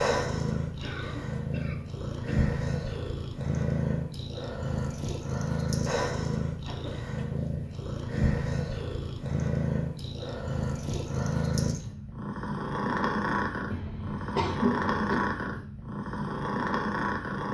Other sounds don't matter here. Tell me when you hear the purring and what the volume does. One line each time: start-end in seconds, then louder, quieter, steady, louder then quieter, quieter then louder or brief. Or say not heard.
0.0-17.5 steady.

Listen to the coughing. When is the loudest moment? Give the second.
15 s.